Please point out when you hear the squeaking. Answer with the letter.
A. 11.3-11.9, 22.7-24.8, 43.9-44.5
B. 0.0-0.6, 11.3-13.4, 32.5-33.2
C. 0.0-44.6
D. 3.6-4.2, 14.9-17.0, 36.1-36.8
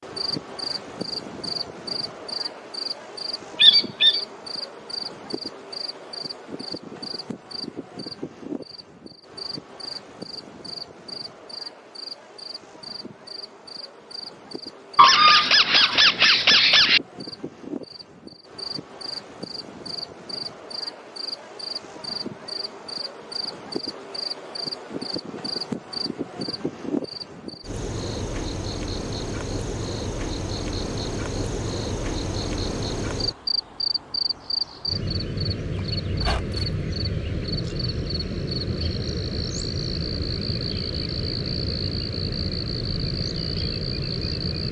D.